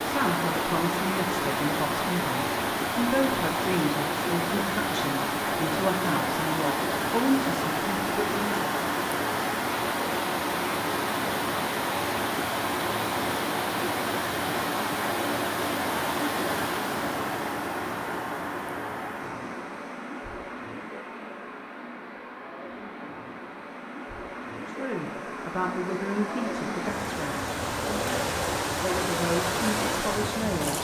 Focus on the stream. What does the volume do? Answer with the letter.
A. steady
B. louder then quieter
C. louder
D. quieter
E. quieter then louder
E.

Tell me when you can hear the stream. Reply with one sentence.
The stream can be heard from 0.0 to 30.7 s.